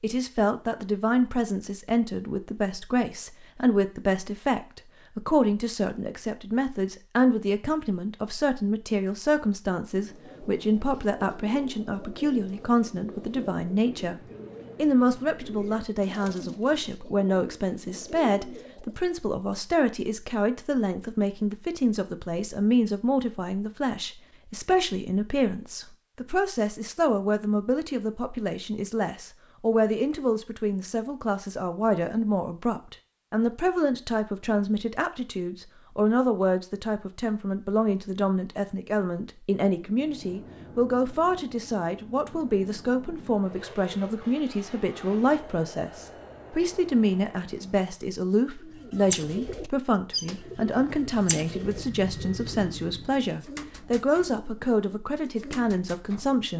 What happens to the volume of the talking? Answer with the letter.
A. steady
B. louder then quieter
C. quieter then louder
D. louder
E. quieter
A.